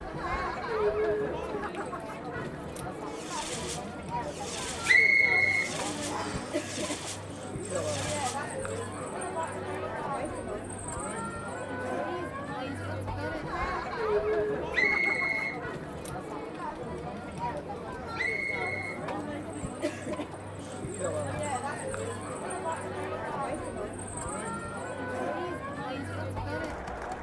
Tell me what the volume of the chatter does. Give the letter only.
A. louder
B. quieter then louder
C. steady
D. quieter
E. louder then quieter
C.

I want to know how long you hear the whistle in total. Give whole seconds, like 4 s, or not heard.
3 s.